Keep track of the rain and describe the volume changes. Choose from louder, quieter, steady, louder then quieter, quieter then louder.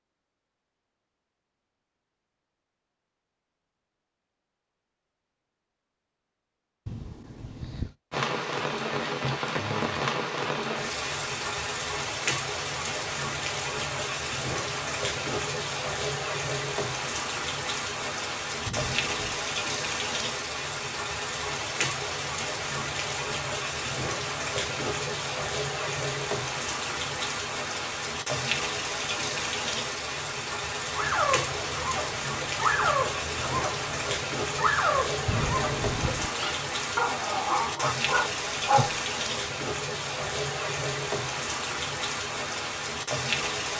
steady.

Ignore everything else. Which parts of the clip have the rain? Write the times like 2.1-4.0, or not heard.
8.1-43.7.